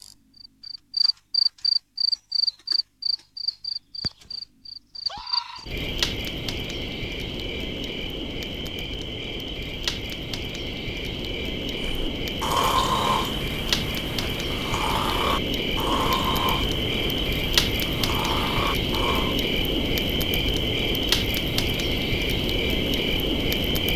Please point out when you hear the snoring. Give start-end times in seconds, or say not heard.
11.8-19.4.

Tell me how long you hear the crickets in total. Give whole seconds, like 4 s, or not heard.
24 s.